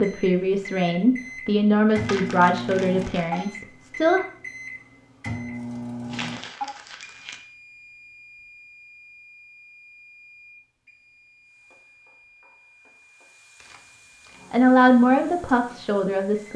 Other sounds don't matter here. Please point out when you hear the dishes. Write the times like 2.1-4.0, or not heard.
not heard.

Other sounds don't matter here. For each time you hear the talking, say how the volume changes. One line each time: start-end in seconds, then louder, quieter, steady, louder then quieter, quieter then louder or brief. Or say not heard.
0.0-4.2 quieter
14.5-16.5 brief.